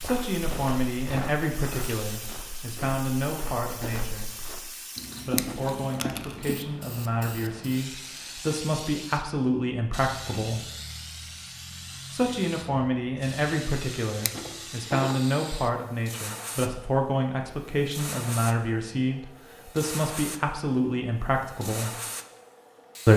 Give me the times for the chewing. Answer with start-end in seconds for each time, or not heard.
5.0-6.5.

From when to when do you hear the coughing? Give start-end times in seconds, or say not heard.
not heard.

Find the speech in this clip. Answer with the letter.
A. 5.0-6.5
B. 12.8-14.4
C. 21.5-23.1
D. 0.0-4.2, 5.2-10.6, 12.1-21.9
D.